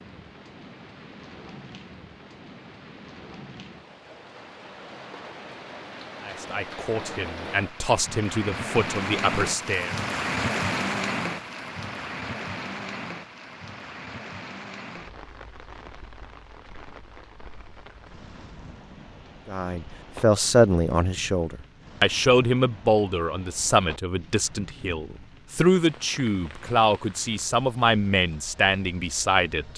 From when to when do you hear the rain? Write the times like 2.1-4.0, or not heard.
0.0-29.7.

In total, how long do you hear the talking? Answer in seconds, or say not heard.
14 s.